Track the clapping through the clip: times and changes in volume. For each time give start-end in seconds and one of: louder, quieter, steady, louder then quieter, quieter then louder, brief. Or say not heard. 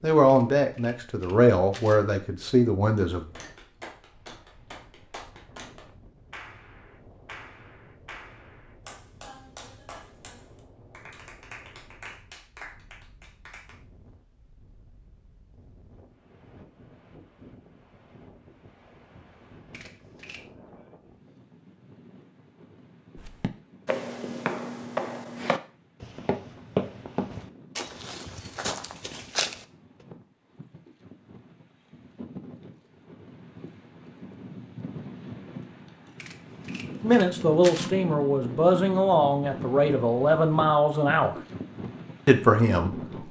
2.9-13.8 steady.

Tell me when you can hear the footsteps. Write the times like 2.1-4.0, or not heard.
23.1-29.6.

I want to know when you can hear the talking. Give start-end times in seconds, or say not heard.
0.0-3.2, 37.0-41.4, 42.2-43.2.